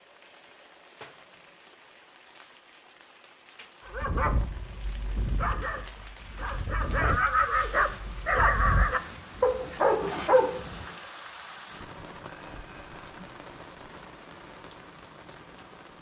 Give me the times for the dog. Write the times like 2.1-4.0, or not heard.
3.9-10.9.